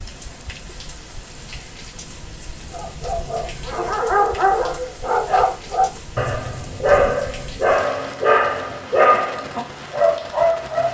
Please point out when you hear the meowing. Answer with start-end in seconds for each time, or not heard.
not heard.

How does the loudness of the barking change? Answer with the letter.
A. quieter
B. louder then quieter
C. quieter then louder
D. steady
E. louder
D.